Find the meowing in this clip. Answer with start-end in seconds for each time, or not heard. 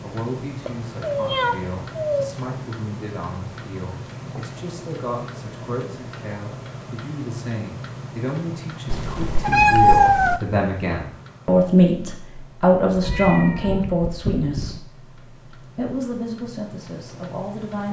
0.6-2.2, 8.9-10.4, 12.9-14.8.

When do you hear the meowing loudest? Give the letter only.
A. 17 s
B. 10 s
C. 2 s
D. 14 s
B.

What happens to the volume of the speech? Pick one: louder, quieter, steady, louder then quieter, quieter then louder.
louder then quieter.